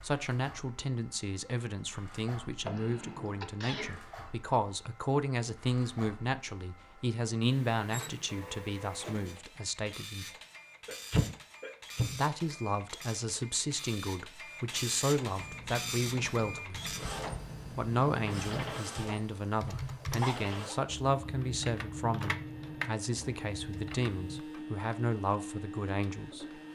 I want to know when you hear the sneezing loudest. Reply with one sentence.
The loudest moment of the sneezing is at 11 seconds.